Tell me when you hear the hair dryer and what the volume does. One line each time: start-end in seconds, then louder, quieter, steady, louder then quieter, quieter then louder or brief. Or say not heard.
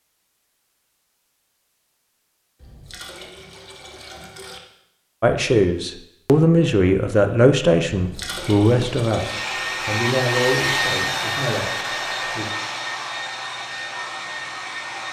9.1-15.0 quieter.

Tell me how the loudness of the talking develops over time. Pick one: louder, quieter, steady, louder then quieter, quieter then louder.
quieter.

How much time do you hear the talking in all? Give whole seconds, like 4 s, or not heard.
7 s.